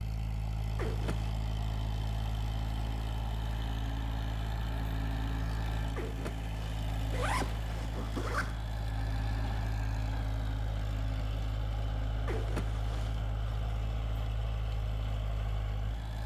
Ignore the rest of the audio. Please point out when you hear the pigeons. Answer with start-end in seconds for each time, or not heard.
not heard.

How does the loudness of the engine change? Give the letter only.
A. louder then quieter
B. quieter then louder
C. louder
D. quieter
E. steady
E.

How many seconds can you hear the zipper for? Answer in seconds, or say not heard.
4 s.